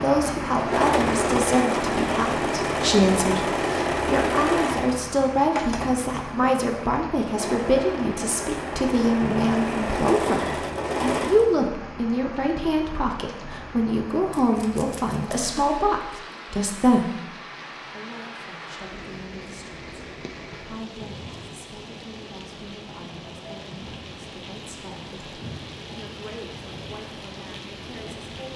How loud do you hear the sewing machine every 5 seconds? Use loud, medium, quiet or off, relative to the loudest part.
loud, medium, loud, off, off, off.